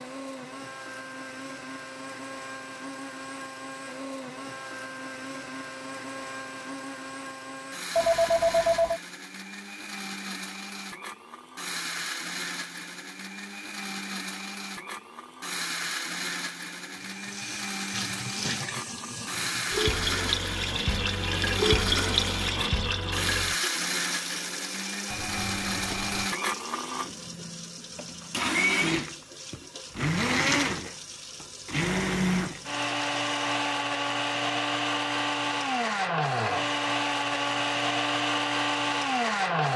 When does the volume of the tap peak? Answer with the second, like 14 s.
22 s.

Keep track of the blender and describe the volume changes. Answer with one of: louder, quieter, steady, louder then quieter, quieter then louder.
louder.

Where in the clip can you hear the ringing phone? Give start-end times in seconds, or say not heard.
8.0-9.0, 25.1-26.3.